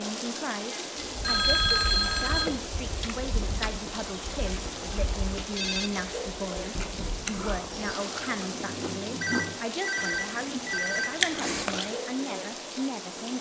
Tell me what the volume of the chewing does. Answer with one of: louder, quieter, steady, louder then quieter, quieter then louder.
louder.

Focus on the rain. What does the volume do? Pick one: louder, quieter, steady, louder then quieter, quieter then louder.
steady.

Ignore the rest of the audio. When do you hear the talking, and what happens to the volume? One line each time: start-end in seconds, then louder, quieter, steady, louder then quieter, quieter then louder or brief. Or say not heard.
0.0-13.3 steady.